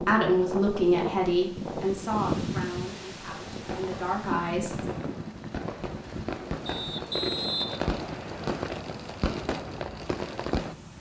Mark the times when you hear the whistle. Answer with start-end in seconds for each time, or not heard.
6.7-8.7.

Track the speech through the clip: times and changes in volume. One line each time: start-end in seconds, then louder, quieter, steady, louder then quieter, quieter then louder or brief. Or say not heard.
0.0-4.8 quieter then louder.